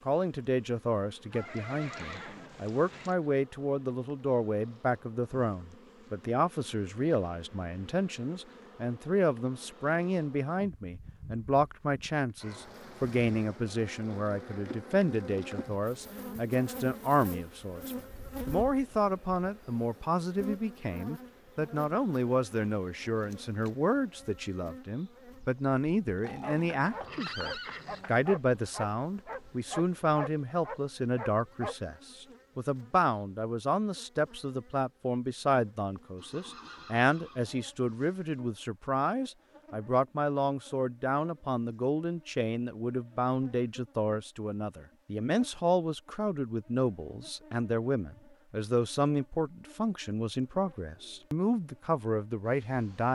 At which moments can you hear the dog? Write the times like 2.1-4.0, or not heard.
26.4-31.8.